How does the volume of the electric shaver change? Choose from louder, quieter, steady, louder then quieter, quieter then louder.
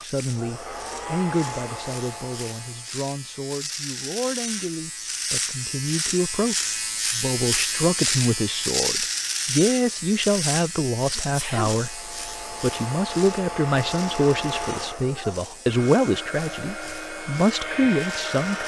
louder then quieter.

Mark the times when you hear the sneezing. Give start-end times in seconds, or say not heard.
11.2-11.8.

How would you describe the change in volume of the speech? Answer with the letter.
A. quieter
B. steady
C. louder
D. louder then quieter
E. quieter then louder
C.